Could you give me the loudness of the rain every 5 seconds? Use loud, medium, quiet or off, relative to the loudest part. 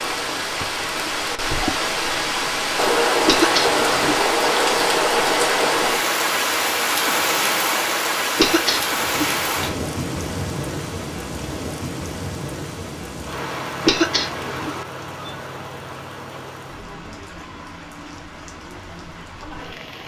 loud, loud, medium, quiet.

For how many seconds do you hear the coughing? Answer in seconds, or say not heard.
3 s.